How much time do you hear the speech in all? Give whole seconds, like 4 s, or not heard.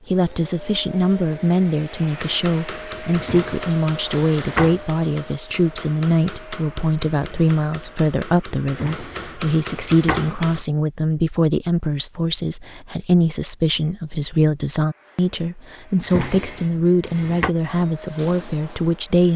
19 s.